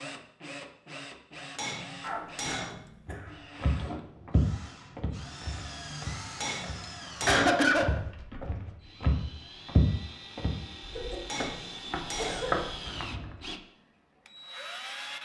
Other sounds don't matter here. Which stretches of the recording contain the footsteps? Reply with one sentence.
The footsteps can be heard from 3.0 to 13.4 s.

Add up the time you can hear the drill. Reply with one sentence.
The drill can be heard for 15 seconds in total.